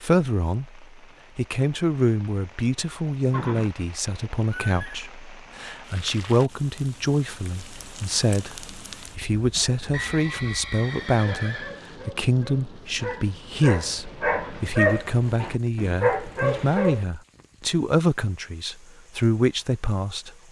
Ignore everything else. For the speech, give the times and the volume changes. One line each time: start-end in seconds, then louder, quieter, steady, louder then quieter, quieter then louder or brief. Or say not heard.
0.0-20.4 steady.